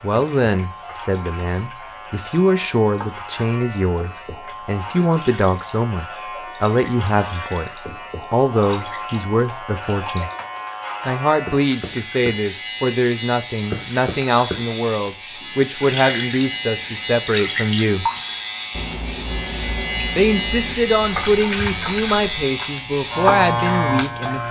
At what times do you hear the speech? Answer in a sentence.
You can hear the speech from 0.0 to 10.3 s, from 11.1 to 18.1 s and from 20.1 to 24.4 s.